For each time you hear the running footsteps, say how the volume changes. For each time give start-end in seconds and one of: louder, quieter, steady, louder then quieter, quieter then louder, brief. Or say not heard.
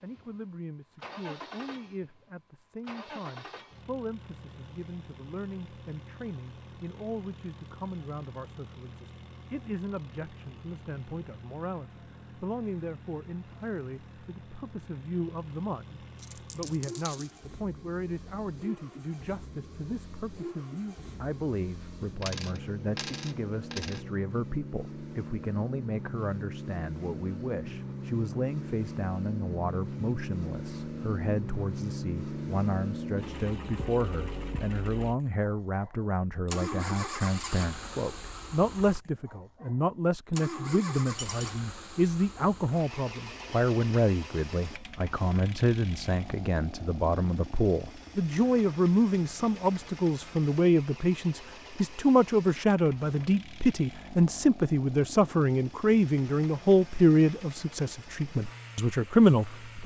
not heard.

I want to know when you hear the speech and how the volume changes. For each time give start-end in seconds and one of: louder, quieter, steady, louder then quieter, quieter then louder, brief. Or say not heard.
0.0-59.8 louder.